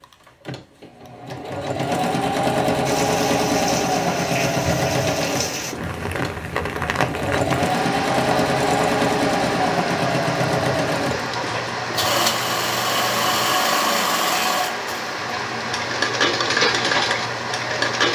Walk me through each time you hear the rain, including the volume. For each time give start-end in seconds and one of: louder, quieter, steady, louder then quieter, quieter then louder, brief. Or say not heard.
2.9-18.0 steady.